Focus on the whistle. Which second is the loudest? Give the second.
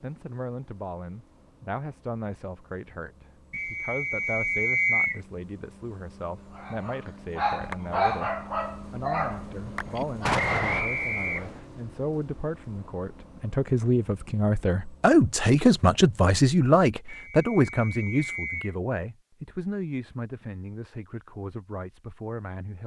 5 s.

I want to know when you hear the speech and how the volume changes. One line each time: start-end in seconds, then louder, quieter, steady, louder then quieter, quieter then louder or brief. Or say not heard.
0.0-22.8 louder then quieter.